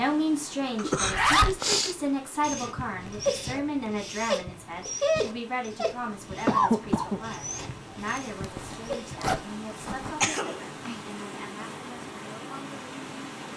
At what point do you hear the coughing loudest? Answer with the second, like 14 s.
7 s.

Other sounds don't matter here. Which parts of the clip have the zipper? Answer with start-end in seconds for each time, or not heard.
1.0-1.6, 8.0-10.3.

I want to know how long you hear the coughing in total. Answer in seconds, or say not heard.
3 s.